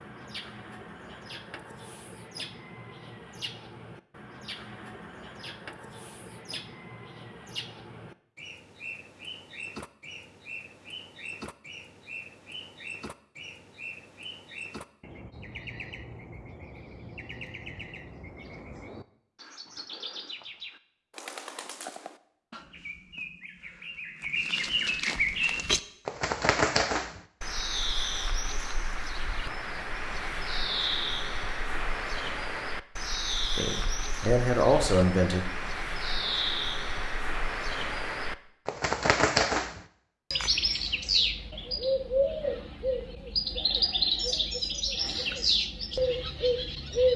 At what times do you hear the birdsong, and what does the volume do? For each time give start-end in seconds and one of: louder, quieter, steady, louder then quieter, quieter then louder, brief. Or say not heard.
0.0-47.1 louder.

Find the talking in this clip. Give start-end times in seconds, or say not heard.
33.5-35.5.